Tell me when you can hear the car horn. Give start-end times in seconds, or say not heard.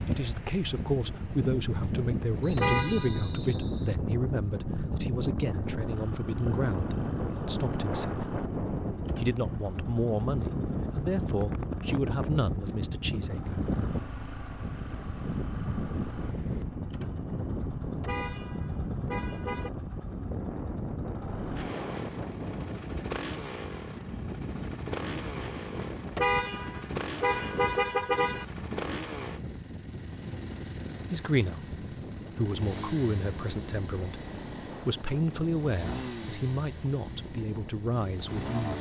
2.5-3.3, 18.0-19.7, 26.1-28.4.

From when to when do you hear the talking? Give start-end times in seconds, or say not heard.
0.1-8.2, 9.2-13.6, 31.1-38.7.